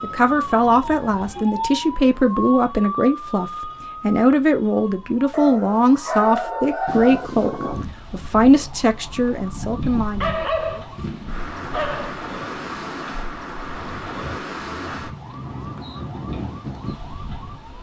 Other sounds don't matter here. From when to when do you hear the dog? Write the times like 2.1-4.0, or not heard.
5.3-7.3, 10.2-12.2.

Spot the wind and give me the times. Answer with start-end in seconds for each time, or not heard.
6.8-17.7.